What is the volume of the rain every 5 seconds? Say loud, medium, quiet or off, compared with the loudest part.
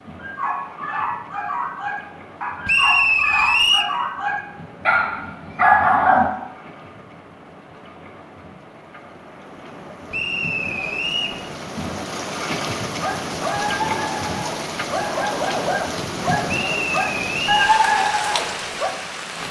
quiet, quiet, loud, loud.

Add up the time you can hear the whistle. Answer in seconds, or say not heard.
4 s.